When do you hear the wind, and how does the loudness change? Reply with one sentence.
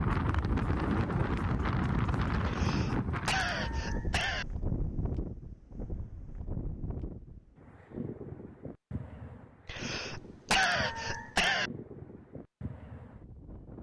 You can hear the wind from 0.0 to 13.7 s, getting quieter.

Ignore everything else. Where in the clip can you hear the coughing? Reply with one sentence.
The coughing can be heard from 2.5 to 4.5 s and from 9.7 to 11.7 s.